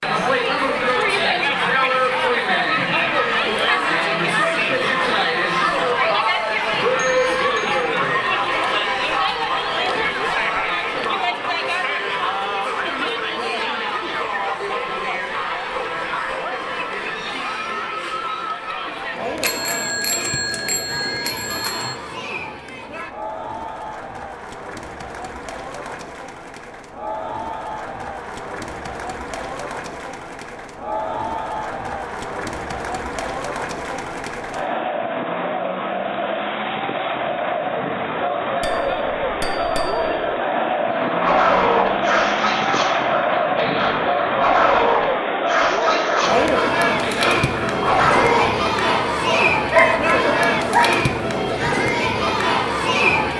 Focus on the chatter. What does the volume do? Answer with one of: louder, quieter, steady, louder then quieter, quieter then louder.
quieter then louder.